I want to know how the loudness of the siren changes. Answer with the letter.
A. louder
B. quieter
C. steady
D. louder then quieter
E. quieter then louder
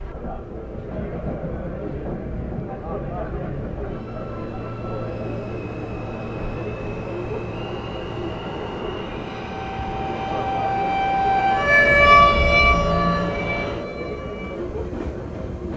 D.